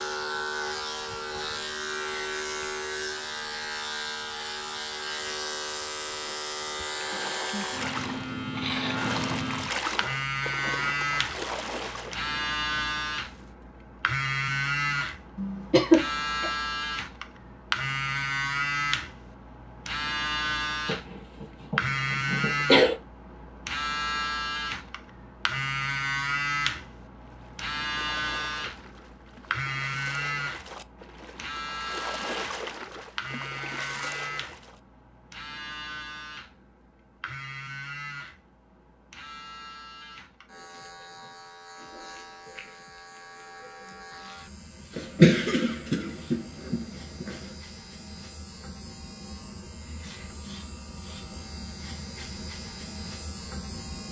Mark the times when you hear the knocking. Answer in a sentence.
The knocking can't be heard in this clip.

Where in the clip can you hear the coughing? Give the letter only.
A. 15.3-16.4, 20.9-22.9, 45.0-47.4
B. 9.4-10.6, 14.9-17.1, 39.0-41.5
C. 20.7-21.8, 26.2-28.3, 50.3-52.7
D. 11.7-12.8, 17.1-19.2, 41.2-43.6
A.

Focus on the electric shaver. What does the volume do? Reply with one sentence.
The volume of the electric shaver goes down.